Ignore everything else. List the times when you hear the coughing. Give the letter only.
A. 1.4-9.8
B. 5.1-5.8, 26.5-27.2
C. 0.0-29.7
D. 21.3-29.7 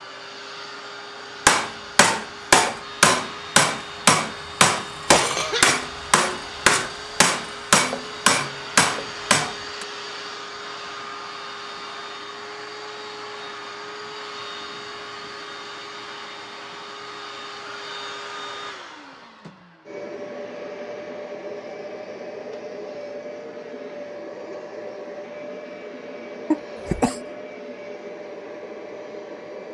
B.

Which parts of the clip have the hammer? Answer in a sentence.
The hammer can be heard from 1.4 to 9.8 s.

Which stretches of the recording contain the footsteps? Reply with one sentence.
You can't hear the footsteps here.